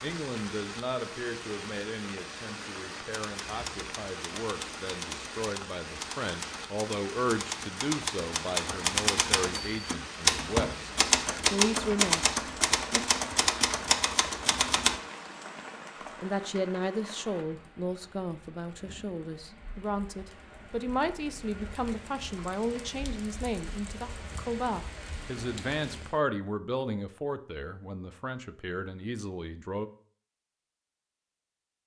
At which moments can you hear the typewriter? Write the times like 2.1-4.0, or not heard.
3.1-15.0.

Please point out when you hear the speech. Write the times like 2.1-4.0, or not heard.
0.0-10.9, 11.5-13.1, 16.1-29.9.